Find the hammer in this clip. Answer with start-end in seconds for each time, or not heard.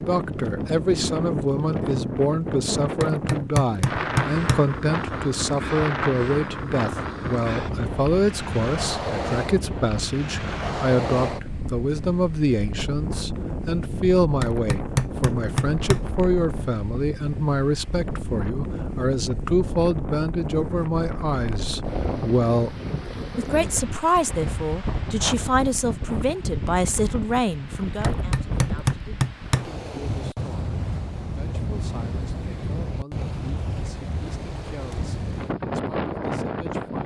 3.0-4.7, 14.4-16.1, 28.0-29.7.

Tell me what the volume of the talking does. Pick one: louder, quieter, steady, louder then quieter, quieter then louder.
quieter.